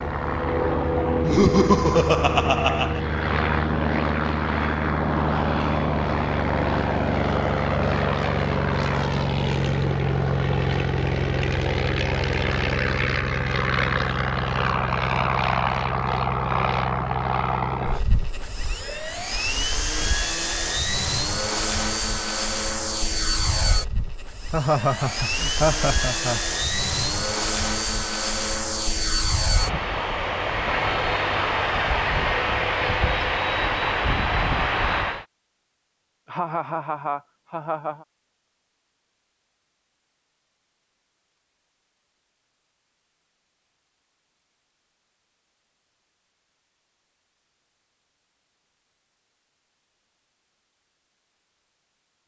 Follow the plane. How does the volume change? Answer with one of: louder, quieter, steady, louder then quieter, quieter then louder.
steady.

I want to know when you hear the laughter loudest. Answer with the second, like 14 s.
2 s.